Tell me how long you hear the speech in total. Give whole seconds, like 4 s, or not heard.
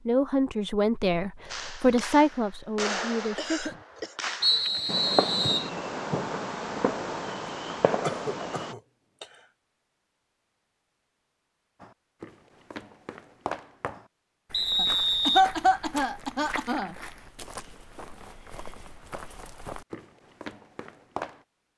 4 s.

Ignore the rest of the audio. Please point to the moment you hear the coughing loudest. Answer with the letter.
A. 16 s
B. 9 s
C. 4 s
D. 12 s
A.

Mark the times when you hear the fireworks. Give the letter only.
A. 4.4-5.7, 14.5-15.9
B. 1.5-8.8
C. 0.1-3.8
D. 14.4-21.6
B.